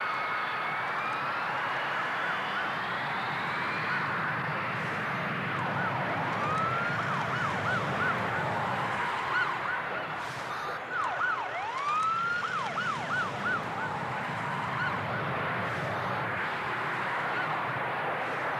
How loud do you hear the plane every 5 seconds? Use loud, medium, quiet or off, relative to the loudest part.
loud, loud, medium, loud.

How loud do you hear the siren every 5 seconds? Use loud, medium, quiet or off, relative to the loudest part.
medium, loud, loud, medium.